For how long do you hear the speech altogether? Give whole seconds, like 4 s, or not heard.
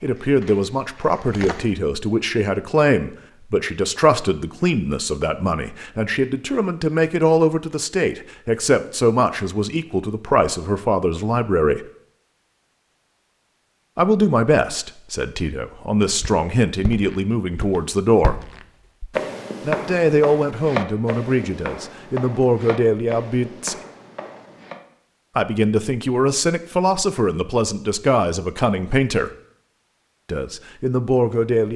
26 s.